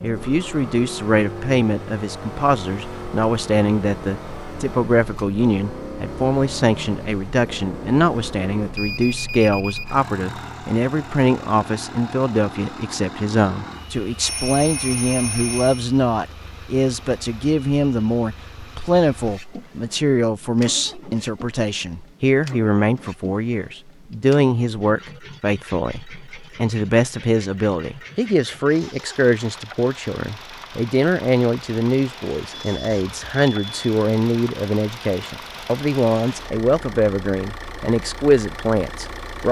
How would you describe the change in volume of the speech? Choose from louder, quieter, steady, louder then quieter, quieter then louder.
steady.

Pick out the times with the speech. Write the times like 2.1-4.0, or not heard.
0.0-39.4.